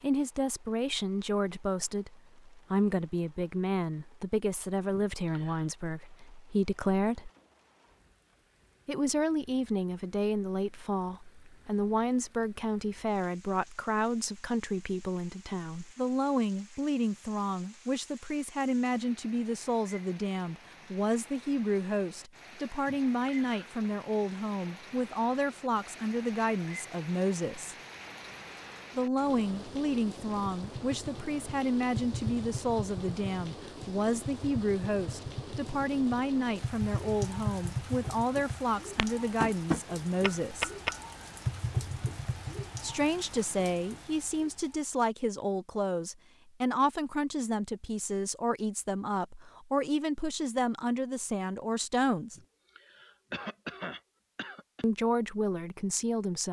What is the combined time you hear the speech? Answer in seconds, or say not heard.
49 s.